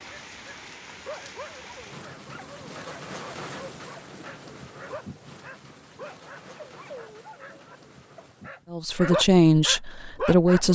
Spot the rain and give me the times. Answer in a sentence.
The rain can be heard from 0.0 to 8.8 s.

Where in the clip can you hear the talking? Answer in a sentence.
You can hear the talking from 8.7 to 10.7 s.